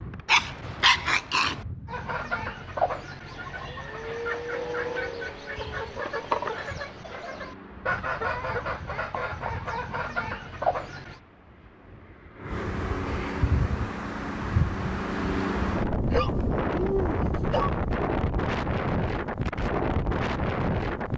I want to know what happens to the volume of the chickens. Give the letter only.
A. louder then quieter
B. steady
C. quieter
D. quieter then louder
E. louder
B.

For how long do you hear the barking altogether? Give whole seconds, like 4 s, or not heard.
3 s.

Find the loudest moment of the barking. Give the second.
1 s.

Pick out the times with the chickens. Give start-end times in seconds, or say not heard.
1.9-11.2.